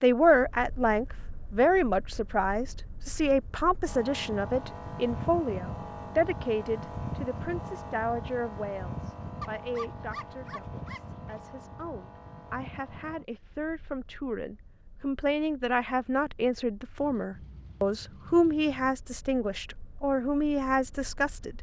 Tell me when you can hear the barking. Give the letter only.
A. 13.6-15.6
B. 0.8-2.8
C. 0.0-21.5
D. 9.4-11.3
D.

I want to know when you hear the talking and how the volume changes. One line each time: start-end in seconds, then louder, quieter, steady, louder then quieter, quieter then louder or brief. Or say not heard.
0.0-21.5 quieter then louder.